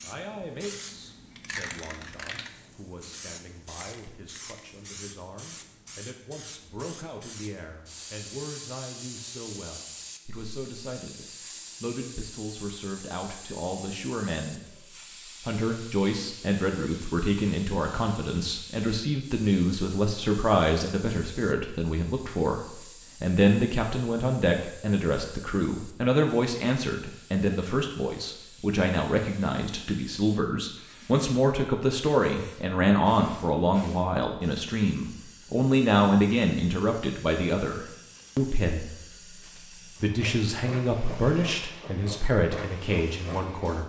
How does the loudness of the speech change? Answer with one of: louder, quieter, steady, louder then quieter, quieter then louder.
louder.